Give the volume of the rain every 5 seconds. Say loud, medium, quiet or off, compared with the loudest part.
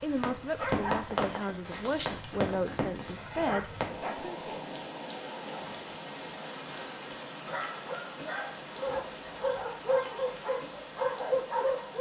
loud, medium, medium.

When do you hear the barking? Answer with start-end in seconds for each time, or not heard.
0.0-4.2, 7.5-11.9.